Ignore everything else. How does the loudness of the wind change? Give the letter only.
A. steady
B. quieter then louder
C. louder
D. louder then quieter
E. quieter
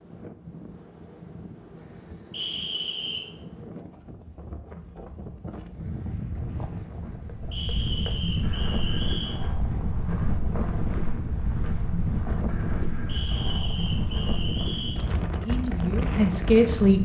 C.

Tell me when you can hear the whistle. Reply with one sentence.
The whistle can be heard from 2.3 to 3.3 s, from 7.5 to 9.4 s and from 13.1 to 15.0 s.